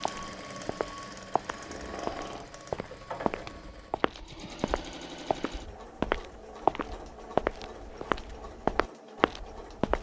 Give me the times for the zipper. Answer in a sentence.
The zipper can't be heard in this clip.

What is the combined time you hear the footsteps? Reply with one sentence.
The footsteps can be heard for 10 seconds in total.